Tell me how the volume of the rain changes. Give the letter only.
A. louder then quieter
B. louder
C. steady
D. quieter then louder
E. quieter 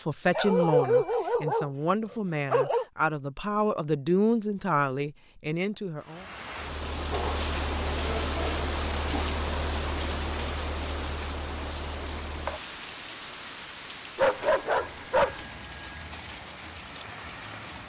E.